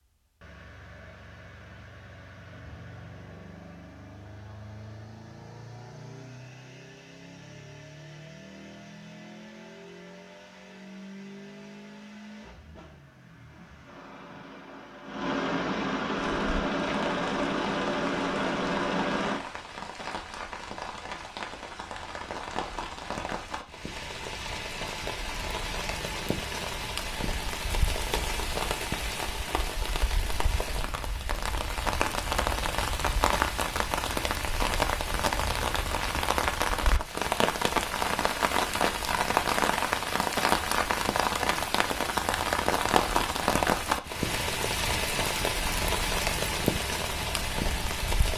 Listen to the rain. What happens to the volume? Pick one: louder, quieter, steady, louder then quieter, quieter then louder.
louder.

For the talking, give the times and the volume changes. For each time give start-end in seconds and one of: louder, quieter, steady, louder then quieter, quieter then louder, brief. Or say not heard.
not heard.